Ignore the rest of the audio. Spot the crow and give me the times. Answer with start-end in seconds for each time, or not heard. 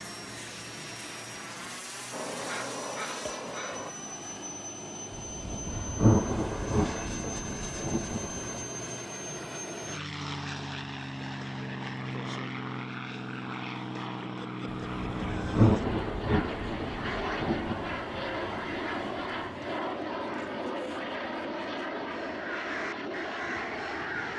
2.1-3.9, 22.1-24.3.